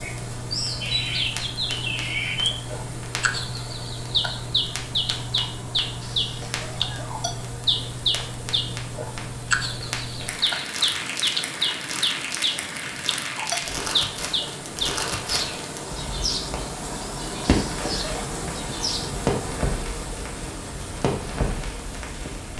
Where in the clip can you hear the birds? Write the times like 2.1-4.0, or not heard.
0.0-19.1.